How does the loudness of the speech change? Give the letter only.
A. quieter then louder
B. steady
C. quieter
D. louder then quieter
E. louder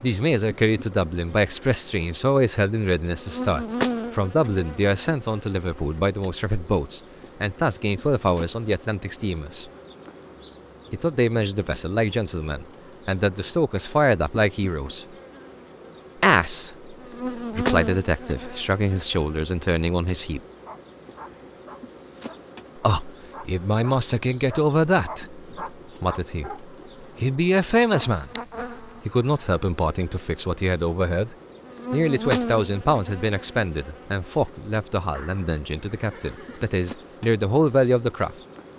B.